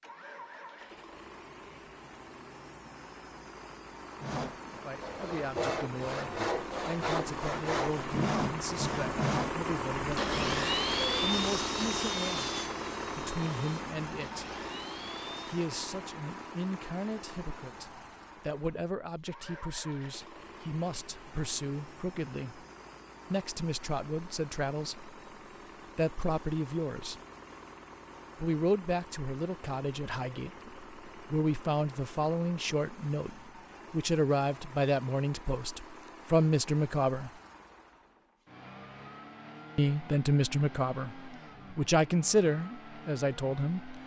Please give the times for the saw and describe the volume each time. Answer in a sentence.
You can hear the saw from 4.2 to 15.7 s, getting quieter.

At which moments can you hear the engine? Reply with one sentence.
You can hear the engine from 0.0 to 44.0 s.